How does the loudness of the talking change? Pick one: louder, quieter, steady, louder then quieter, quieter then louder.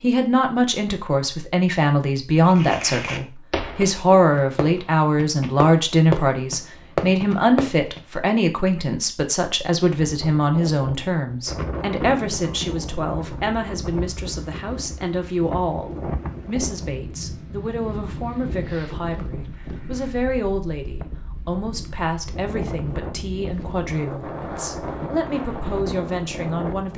quieter.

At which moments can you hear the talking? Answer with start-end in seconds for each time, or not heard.
0.0-26.9.